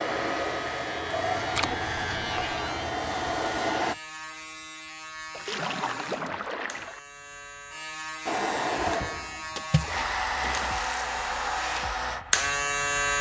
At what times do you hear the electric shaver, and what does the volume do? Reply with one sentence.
The electric shaver can be heard from 0.0 to 13.1 s, getting quieter then louder.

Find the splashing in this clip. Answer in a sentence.
The splashing can be heard from 1.6 to 2.5 s, from 5.3 to 7.0 s and from 9.6 to 11.0 s.